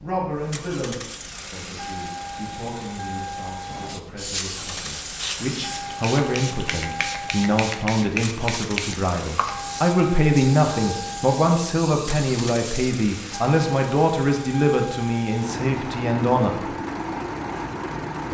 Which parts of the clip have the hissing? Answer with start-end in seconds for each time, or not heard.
3.6-13.4.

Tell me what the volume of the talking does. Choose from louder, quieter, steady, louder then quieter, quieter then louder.
louder.